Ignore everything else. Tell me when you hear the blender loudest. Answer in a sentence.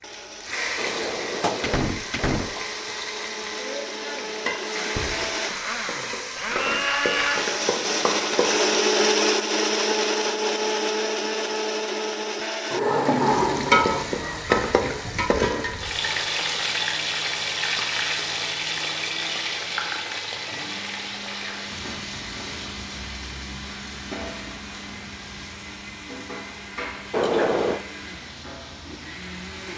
The volume of the blender peaks at 9 seconds.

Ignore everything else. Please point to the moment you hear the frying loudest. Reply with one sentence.
The volume of the frying peaks at 14 seconds.